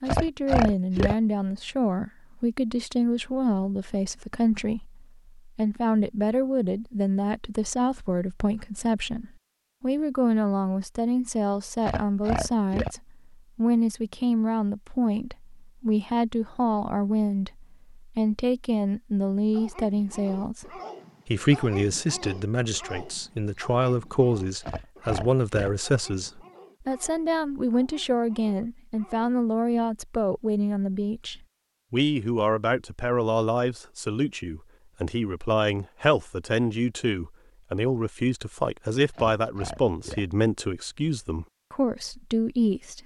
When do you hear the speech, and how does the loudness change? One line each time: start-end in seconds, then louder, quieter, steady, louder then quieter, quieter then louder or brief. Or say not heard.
0.0-43.0 steady.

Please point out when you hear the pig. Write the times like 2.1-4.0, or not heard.
0.1-1.1, 11.8-12.9, 24.6-25.7, 39.1-40.2.